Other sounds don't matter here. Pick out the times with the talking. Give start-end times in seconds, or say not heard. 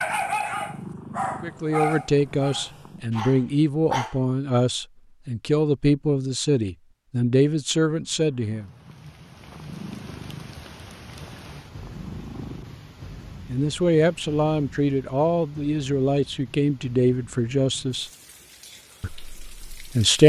1.4-8.7, 13.4-18.1, 19.0-20.2.